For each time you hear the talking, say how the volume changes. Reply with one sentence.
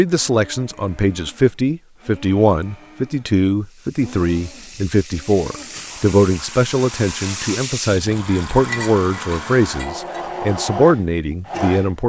You can hear the talking from 0.0 to 12.0 s, at a steady volume.